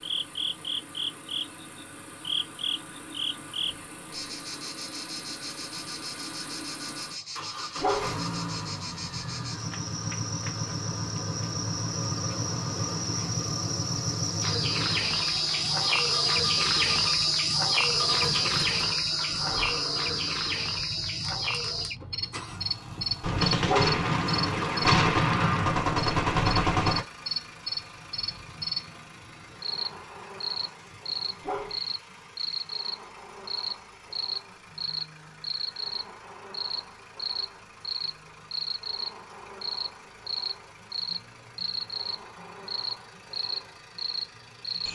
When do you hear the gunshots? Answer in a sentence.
You can hear the gunshots from 23.2 to 27.0 s.